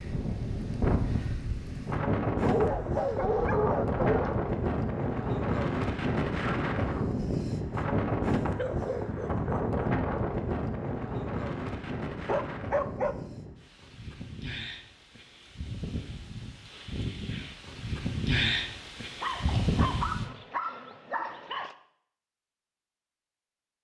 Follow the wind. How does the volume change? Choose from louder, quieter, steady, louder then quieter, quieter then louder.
quieter then louder.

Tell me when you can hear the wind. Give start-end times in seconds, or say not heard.
0.0-20.3.